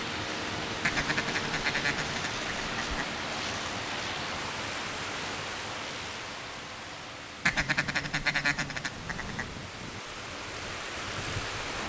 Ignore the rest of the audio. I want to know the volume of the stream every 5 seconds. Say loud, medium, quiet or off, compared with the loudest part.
loud, medium, loud.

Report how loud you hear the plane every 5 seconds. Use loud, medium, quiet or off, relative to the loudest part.
loud, medium, medium.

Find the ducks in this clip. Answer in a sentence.
You can hear the ducks from 0.8 to 3.1 s and from 7.5 to 9.6 s.